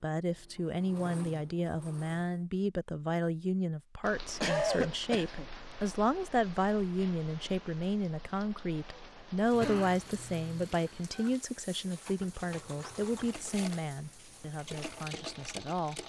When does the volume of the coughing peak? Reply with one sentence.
The loudest moment of the coughing is at 5 seconds.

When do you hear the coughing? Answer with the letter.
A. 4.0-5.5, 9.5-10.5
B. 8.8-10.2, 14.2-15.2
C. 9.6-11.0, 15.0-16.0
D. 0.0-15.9
A.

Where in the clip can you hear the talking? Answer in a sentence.
You can hear the talking from 0.0 to 15.9 s.